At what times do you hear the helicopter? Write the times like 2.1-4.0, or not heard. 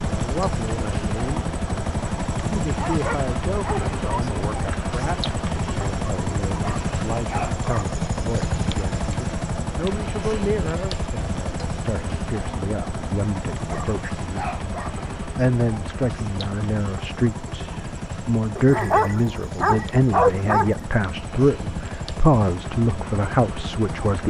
0.0-24.2.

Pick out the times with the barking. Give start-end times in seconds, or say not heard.
2.8-4.2, 6.6-8.0, 13.7-15.0, 18.6-20.8.